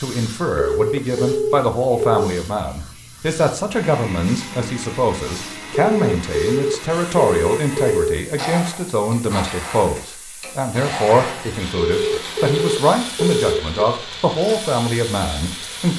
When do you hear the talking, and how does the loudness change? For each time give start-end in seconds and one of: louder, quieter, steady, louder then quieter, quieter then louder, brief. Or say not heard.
0.0-15.9 steady.